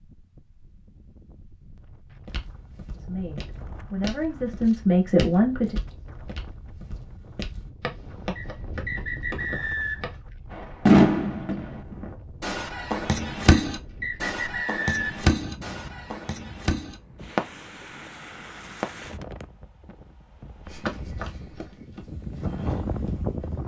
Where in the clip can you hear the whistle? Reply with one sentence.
The whistle can be heard from 8.3 to 10.2 s and from 13.5 to 15.2 s.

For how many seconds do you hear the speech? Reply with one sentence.
The speech can be heard for 3 seconds in total.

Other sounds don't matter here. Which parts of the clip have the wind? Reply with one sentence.
You can hear the wind from 0.0 to 23.6 s.